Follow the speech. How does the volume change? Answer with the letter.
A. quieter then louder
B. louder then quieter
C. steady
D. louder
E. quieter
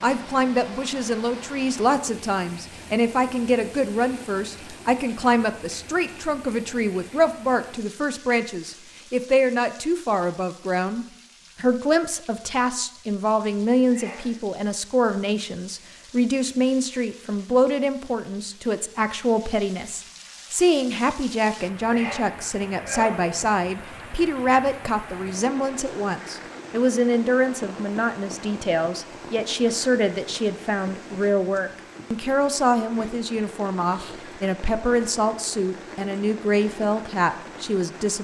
C.